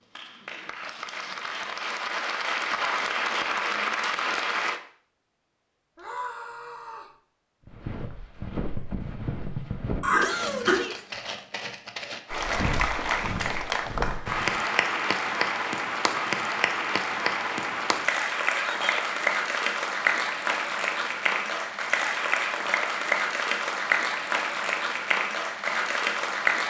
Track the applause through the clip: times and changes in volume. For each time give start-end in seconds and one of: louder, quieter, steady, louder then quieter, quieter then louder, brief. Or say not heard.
0.0-4.8 louder
12.2-26.6 steady.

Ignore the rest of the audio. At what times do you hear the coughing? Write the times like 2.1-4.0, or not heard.
10.0-10.8.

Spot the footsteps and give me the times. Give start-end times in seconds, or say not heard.
7.7-14.6.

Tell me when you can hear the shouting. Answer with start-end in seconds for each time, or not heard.
6.0-7.2, 10.2-11.1, 18.5-19.1.